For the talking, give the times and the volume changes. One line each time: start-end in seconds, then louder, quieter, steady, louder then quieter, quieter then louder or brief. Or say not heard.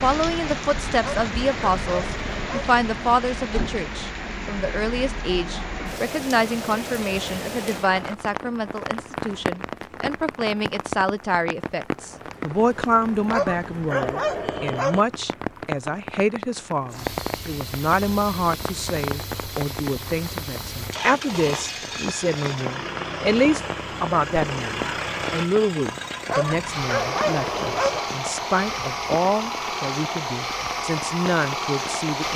0.0-32.3 steady.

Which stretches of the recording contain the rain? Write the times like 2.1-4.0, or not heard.
0.0-32.1.